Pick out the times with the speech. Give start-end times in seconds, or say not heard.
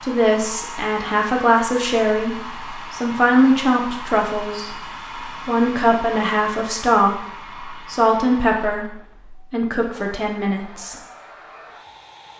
0.0-4.7, 5.5-10.9.